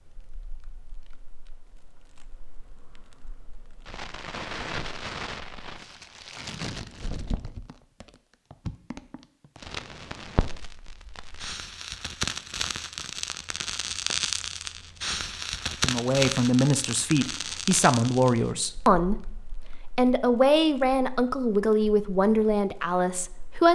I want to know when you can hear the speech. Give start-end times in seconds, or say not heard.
15.8-19.4, 19.9-23.7.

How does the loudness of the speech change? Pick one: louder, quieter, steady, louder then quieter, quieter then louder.
steady.